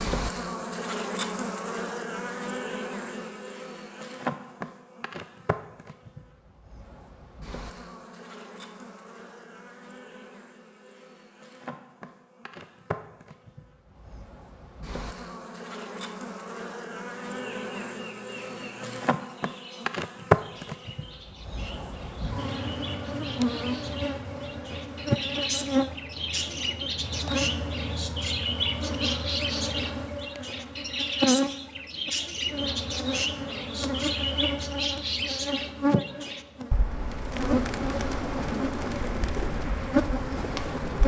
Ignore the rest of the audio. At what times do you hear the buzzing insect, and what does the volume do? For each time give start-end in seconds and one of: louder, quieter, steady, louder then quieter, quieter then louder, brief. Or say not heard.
0.0-41.0 quieter then louder.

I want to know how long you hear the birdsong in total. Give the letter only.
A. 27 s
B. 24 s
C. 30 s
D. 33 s
B.